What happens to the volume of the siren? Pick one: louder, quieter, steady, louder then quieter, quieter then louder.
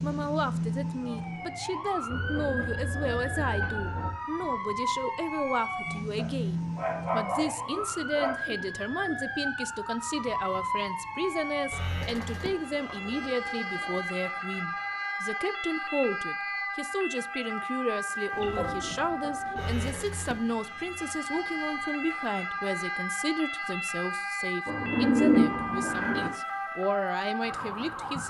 steady.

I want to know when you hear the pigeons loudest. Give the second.
25 s.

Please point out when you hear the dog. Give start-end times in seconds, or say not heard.
6.2-8.4.